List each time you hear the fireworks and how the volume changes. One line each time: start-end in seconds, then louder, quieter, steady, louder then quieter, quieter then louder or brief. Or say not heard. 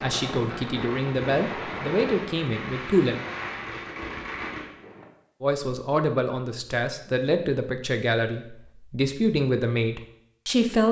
0.0-5.0 steady.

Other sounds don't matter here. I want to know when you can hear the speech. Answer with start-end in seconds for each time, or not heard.
0.0-3.1, 5.4-10.8.